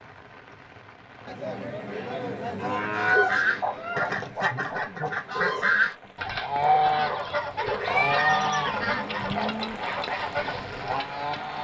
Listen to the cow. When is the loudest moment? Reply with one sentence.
The loudest moment of the cow is at 3 seconds.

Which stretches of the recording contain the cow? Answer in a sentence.
You can hear the cow from 1.2 to 3.1 s and from 8.1 to 9.8 s.